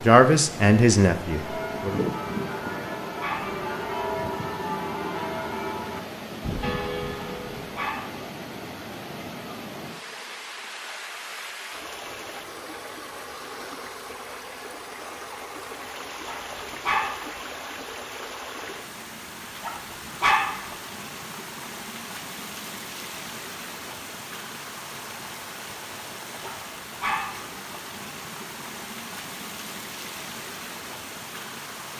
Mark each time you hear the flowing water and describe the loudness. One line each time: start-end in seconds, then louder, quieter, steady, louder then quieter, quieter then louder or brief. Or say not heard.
0.0-31.9 steady.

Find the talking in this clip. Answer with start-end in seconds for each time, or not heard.
0.0-2.0.